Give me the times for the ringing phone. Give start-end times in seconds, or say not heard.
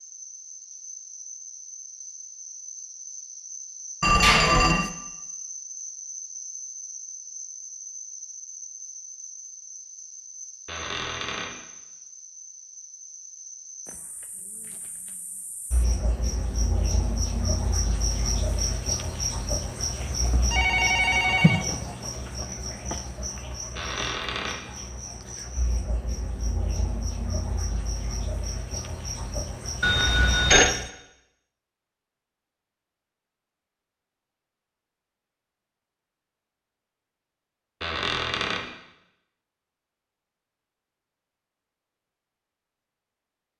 4.0-4.9, 20.5-21.6, 29.8-30.8.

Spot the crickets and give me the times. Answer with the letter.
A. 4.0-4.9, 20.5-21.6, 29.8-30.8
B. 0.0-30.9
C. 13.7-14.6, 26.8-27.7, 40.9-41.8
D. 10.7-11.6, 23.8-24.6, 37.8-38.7
B.